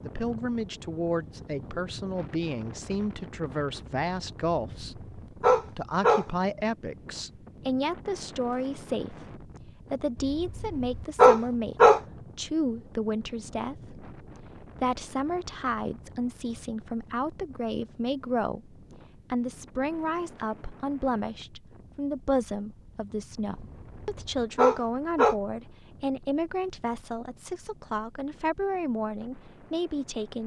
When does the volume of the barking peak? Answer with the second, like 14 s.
11 s.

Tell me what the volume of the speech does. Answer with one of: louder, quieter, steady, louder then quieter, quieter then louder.
steady.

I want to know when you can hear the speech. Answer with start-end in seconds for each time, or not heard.
0.0-30.4.